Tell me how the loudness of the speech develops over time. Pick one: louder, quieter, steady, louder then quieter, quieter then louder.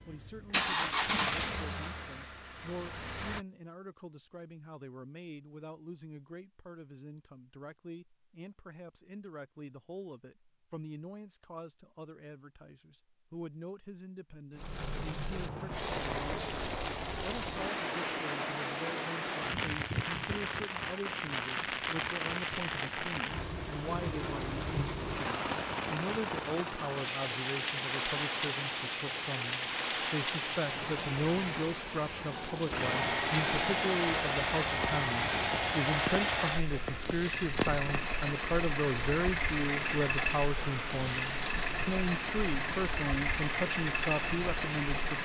louder.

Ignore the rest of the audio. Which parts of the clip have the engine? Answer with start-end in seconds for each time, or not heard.
0.0-3.5, 32.7-45.2.